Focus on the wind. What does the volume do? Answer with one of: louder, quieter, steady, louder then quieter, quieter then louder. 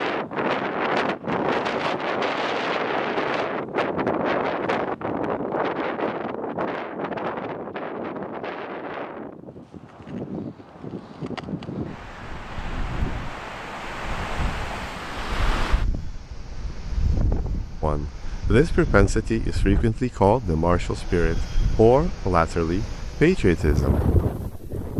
quieter.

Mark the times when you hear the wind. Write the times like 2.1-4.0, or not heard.
0.0-24.9.